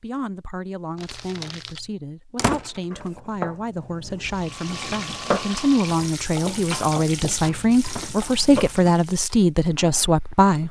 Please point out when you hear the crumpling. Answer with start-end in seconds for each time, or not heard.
0.9-1.9.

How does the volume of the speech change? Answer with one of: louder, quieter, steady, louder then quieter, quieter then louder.
louder.